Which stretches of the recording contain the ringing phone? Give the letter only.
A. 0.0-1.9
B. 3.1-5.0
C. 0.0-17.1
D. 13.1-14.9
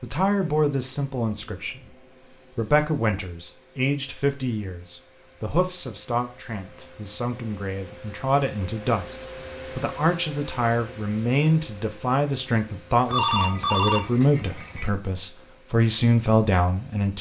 D.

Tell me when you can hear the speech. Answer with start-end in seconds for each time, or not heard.
0.0-17.1.